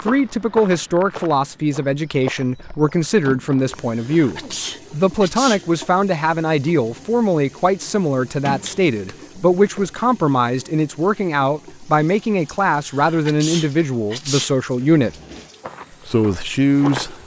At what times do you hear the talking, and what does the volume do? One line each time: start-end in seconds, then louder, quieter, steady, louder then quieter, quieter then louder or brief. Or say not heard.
0.0-15.1 steady
16.1-17.2 brief.